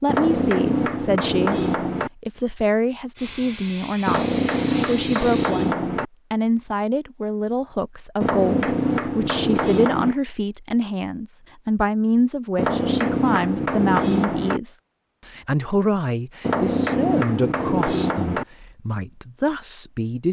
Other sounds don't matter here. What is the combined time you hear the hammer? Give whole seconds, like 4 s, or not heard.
10 s.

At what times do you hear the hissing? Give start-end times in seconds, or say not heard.
3.1-5.5.